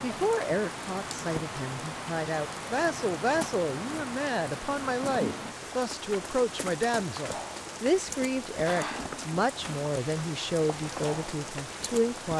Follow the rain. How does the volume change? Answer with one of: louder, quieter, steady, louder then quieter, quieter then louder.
steady.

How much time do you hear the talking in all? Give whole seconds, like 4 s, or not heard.
12 s.